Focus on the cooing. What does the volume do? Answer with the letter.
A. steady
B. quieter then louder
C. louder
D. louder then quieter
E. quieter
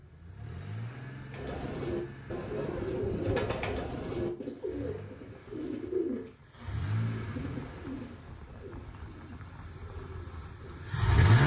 E.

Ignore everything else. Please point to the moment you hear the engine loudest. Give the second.
11 s.